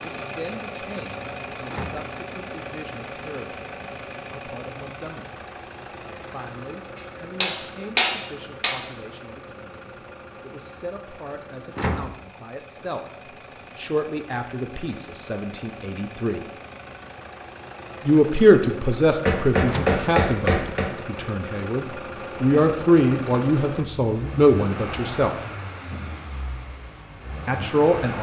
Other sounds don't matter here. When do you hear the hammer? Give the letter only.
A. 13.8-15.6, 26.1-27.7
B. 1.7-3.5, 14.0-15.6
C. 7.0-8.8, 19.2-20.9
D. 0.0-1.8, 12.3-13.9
C.